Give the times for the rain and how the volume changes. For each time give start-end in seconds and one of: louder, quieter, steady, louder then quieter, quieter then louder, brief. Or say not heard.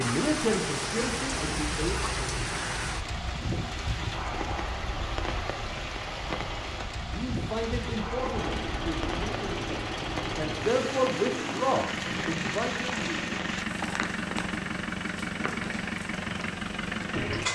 0.0-17.5 quieter.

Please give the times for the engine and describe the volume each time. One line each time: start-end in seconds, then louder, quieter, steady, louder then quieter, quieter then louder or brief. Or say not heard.
8.3-17.5 steady.